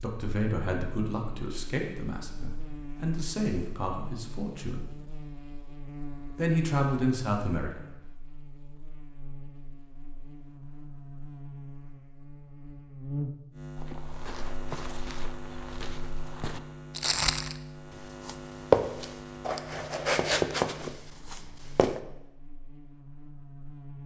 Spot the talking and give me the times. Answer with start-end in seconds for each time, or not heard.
0.0-4.9, 6.3-7.8.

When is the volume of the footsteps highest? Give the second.
19 s.